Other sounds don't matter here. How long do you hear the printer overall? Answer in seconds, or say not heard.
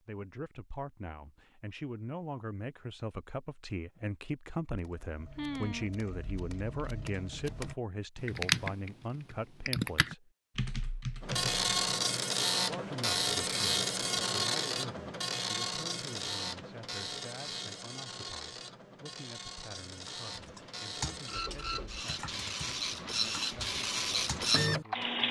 14 s.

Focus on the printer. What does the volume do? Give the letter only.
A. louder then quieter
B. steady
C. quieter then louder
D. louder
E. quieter
C.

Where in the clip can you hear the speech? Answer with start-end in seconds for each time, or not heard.
0.1-10.3, 12.7-25.2.